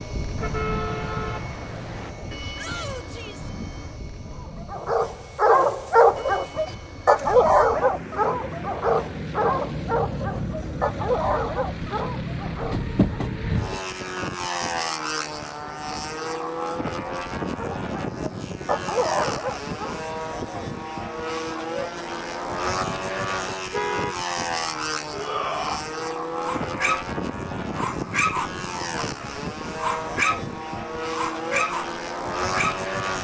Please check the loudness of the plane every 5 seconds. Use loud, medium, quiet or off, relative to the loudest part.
medium, medium, loud, loud, loud, loud, loud.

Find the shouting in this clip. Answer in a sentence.
The shouting can be heard from 2.5 to 3.5 s and from 25.1 to 25.8 s.